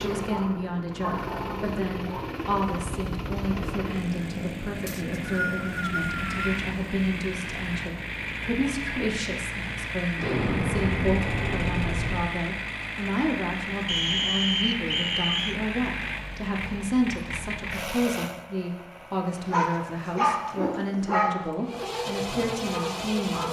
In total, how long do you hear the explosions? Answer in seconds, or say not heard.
2 s.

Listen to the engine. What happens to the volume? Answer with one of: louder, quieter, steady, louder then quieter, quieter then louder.
steady.